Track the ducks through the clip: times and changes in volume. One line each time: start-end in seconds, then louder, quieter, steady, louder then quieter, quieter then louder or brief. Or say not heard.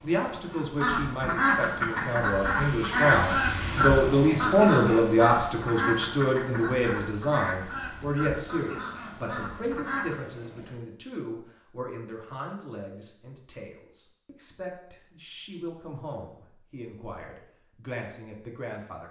0.5-10.2 quieter.